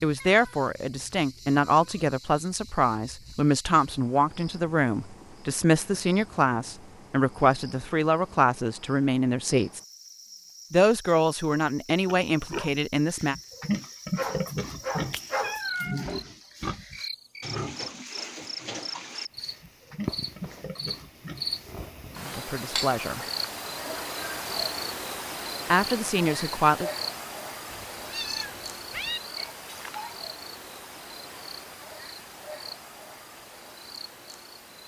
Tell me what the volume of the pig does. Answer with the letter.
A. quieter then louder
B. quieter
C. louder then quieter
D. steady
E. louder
B.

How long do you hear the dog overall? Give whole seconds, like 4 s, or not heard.
2 s.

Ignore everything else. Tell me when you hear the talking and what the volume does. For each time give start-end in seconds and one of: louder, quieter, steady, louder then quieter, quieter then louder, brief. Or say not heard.
0.0-9.8 steady
10.7-13.3 brief
22.3-23.2 brief
25.7-26.9 brief.